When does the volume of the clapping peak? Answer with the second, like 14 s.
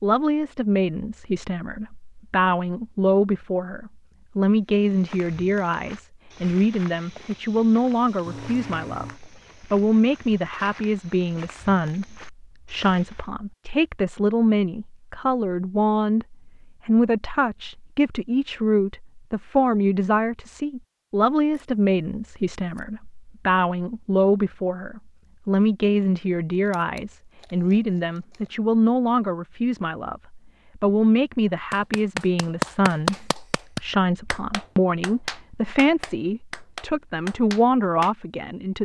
33 s.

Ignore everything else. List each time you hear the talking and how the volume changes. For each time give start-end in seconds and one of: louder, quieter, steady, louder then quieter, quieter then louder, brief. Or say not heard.
0.0-38.8 steady.